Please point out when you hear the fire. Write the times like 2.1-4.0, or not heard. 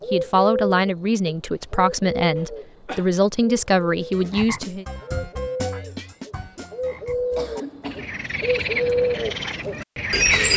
not heard.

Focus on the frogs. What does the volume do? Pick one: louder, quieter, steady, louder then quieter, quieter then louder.
quieter then louder.